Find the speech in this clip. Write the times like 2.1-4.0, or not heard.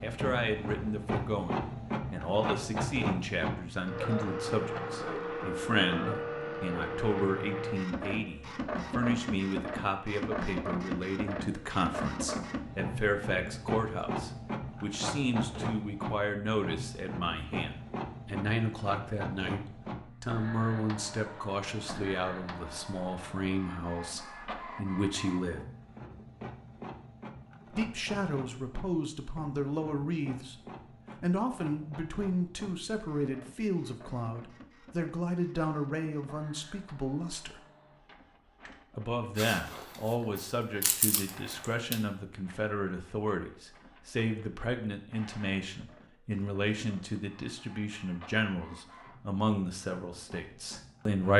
0.0-25.6, 27.7-30.6, 31.2-37.6, 39.0-51.3.